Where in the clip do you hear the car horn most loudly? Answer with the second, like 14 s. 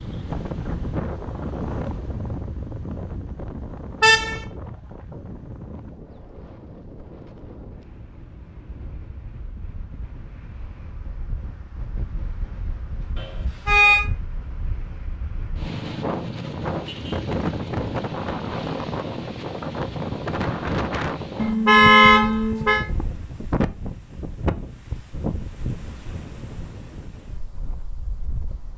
22 s.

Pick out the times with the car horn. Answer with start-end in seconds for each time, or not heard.
4.0-4.4, 13.2-14.1, 21.4-22.9.